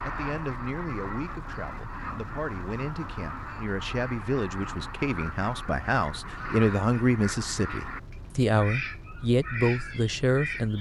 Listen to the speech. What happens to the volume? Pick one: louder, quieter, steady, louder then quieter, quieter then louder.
louder.